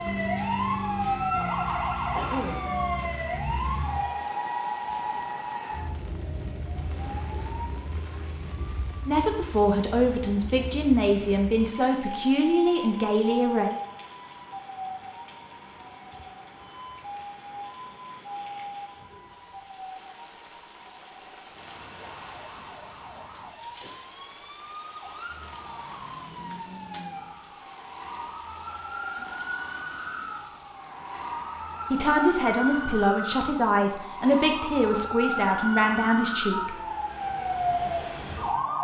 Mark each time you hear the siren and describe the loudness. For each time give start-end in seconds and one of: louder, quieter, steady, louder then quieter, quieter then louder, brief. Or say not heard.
0.0-38.8 quieter then louder.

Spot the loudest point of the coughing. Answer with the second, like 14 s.
2 s.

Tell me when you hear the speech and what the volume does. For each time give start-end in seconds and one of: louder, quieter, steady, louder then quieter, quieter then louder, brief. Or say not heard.
9.1-13.7 steady
31.9-36.8 steady.